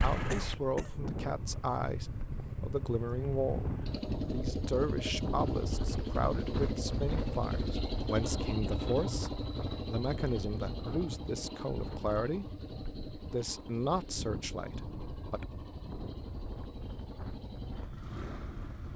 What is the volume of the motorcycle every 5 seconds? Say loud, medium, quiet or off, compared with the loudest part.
loud, loud, medium, medium.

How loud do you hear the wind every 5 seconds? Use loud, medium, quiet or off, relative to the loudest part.
loud, loud, medium, medium.